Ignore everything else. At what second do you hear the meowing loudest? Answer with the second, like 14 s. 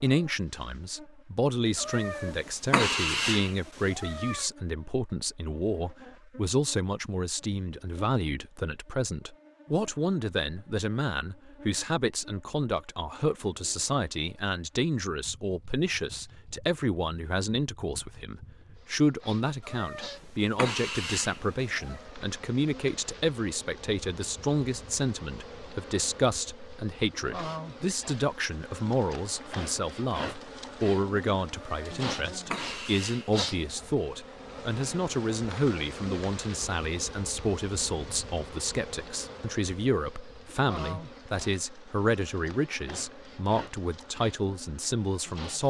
3 s.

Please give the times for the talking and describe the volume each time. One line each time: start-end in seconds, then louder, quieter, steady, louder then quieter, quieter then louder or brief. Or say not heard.
0.0-45.6 steady.